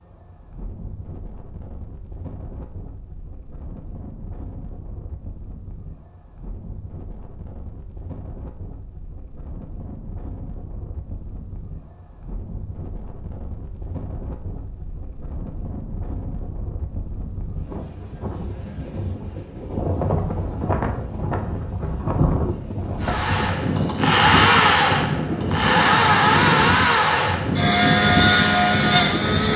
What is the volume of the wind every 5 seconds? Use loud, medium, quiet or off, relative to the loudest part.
quiet, quiet, quiet, medium, loud, loud.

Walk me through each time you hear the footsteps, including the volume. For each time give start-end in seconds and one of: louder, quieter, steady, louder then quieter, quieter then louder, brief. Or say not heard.
not heard.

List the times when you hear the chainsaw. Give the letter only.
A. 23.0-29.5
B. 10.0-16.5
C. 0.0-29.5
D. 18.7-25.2
A.